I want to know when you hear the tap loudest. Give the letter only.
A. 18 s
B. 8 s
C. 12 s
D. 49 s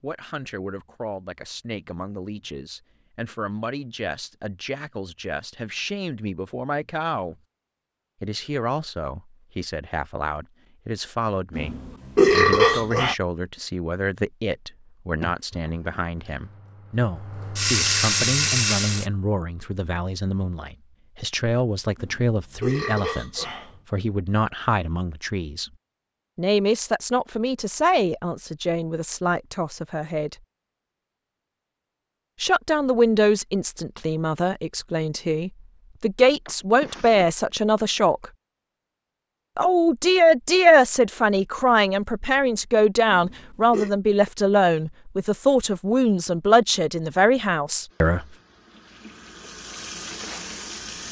A.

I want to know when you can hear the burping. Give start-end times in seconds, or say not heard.
11.6-13.2, 21.9-23.8, 43.1-43.9.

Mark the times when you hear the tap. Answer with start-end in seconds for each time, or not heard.
16.1-19.1, 47.9-51.0.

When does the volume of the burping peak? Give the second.
12 s.